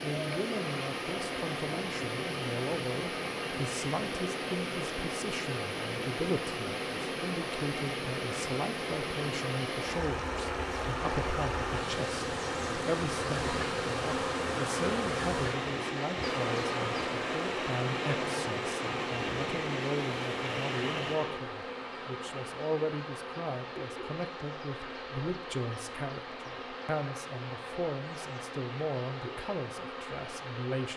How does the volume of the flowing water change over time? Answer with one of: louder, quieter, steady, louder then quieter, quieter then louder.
quieter.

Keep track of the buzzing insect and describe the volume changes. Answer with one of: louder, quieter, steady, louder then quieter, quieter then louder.
louder then quieter.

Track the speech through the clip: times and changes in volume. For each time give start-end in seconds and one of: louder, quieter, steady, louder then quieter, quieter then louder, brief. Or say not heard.
0.0-30.9 steady.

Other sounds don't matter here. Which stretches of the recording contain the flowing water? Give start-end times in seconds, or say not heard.
0.0-30.9.